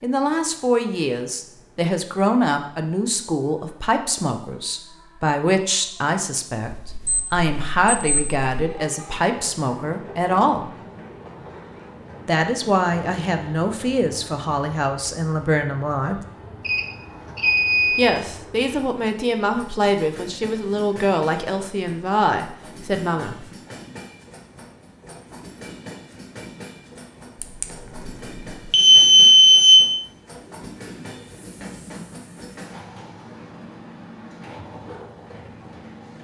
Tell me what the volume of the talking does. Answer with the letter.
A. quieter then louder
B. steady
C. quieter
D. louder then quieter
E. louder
B.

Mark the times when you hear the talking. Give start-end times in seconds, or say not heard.
0.0-10.7, 12.2-16.2, 17.9-23.4.